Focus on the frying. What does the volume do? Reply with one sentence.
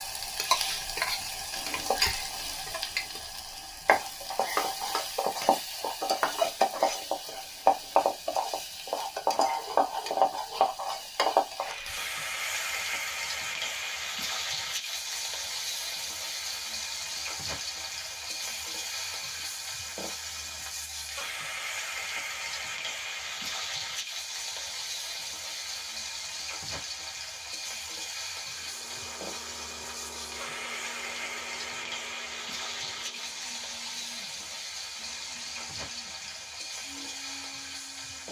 The loudness of the frying goes down.